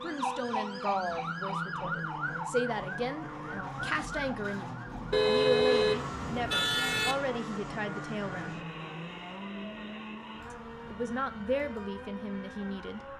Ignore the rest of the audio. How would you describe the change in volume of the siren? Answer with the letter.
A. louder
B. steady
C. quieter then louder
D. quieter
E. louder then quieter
D.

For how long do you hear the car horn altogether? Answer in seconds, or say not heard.
2 s.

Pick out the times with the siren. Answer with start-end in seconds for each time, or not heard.
0.0-13.1.